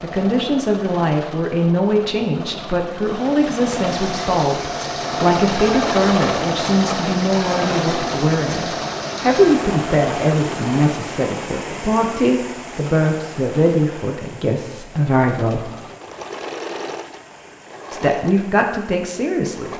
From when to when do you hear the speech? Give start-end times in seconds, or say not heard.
0.0-15.7, 17.9-19.7.